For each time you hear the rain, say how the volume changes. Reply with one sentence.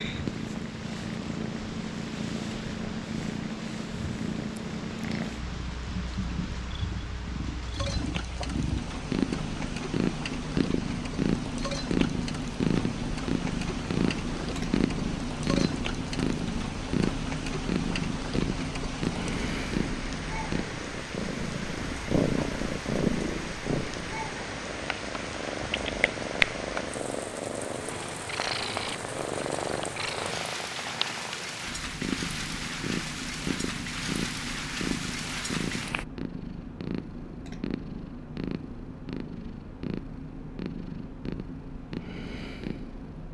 The rain can be heard from 0.0 to 36.0 s, getting louder.